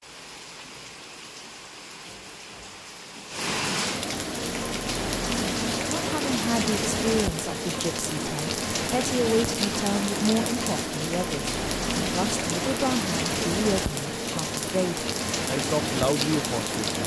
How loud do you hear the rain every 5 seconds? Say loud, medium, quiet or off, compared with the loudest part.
medium, loud, loud, loud.